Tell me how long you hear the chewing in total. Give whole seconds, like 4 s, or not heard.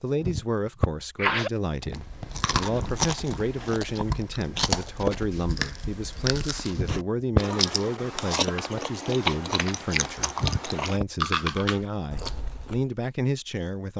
11 s.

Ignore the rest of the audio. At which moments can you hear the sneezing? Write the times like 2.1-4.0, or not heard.
0.2-1.5, 6.8-7.4, 10.3-11.1.